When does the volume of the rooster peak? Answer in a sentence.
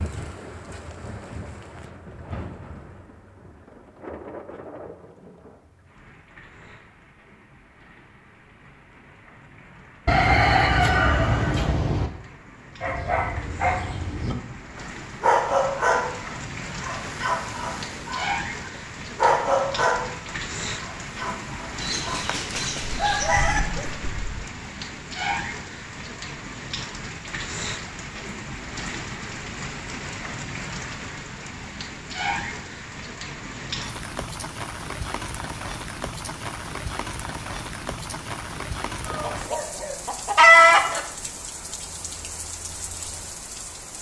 The volume of the rooster peaks at 41 seconds.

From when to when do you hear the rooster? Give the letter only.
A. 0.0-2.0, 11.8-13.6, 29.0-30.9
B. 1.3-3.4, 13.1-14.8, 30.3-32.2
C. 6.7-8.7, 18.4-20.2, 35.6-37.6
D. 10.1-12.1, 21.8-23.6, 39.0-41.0
D.